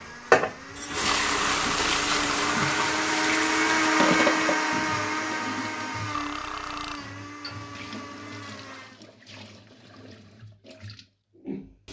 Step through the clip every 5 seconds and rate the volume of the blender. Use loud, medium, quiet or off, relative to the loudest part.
loud, medium, off.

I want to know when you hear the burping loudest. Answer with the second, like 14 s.
2 s.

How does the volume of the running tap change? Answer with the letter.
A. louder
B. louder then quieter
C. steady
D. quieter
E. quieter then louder
D.